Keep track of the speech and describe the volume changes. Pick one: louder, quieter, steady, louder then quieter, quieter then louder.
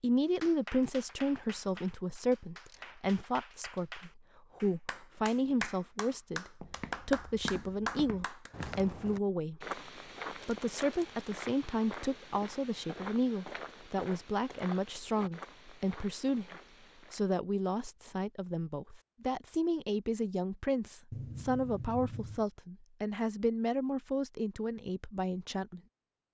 steady.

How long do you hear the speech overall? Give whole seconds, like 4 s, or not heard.
26 s.